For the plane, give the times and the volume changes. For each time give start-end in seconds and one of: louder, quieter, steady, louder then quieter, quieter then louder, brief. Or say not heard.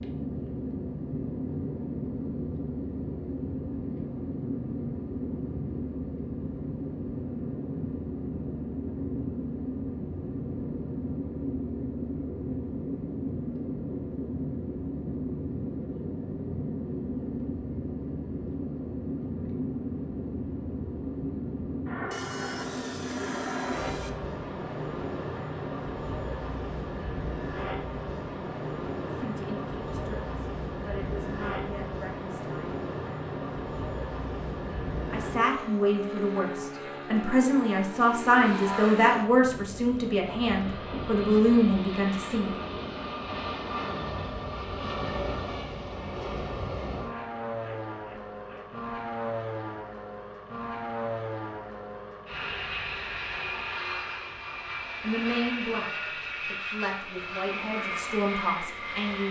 0.0-59.2 steady.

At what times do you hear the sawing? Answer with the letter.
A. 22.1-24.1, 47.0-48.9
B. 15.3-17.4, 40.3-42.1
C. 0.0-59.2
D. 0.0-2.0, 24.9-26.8
A.